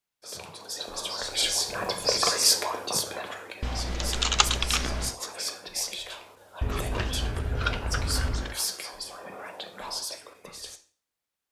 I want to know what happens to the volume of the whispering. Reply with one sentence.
The loudness of the whispering goes down.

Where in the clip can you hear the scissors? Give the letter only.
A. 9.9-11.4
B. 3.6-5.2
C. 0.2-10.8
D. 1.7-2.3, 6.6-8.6
D.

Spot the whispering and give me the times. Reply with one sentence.
You can hear the whispering from 0.2 to 10.8 s.